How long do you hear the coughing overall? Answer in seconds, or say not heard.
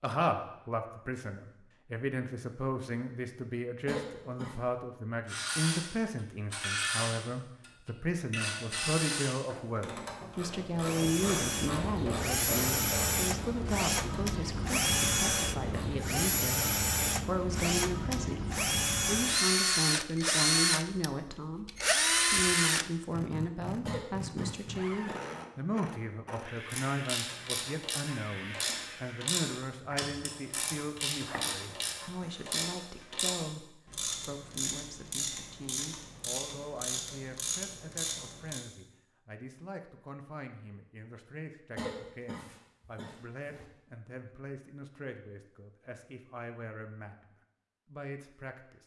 4 s.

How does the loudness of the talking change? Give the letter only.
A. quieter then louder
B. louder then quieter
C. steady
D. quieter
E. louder
D.